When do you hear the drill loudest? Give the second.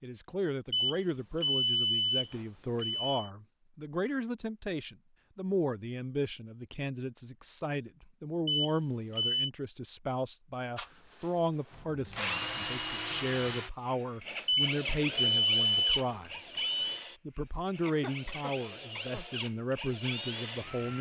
13 s.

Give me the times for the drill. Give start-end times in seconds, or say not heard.
10.8-20.9.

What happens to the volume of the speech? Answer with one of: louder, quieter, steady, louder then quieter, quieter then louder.
steady.